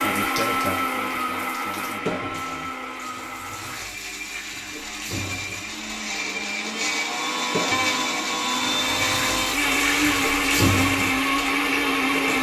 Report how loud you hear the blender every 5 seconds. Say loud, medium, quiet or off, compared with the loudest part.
medium, loud, loud.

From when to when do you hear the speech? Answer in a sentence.
The speech can be heard from 0.0 to 2.8 s.